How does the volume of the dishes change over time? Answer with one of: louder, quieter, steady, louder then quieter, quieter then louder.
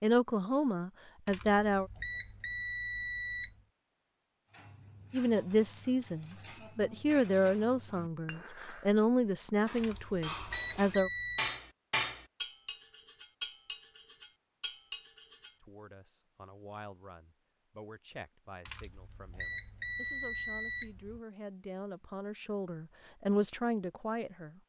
louder.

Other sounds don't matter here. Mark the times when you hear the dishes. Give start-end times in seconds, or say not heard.
4.5-15.5.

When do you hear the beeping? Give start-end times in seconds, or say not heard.
1.2-3.5, 9.8-11.6, 18.6-21.2.